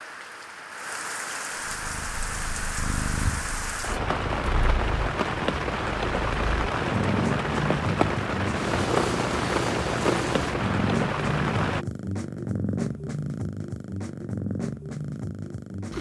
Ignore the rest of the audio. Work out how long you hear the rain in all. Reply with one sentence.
You can hear the rain for 12 seconds altogether.